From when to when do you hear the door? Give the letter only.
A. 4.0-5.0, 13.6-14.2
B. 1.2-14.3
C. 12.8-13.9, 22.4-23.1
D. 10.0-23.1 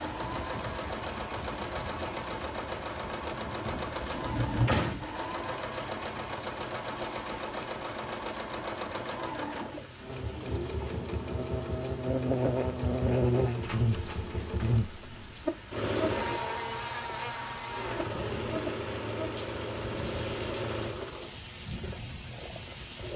A.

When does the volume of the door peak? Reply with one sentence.
The loudest moment of the door is at 5 seconds.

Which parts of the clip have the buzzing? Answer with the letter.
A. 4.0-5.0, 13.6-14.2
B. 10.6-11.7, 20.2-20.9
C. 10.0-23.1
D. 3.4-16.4
C.